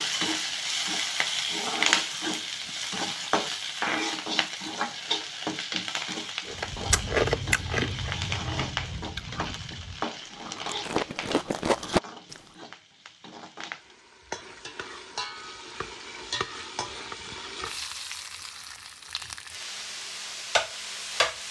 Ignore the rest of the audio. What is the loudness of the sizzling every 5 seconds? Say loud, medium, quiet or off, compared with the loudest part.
loud, medium, medium, medium, loud.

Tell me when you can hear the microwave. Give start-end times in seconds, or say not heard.
not heard.